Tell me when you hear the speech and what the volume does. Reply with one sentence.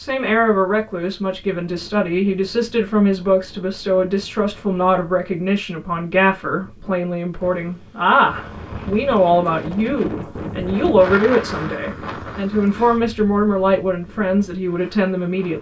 The speech can be heard from 0.0 to 15.5 s, at a steady volume.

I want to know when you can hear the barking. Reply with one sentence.
The barking can't be heard in this clip.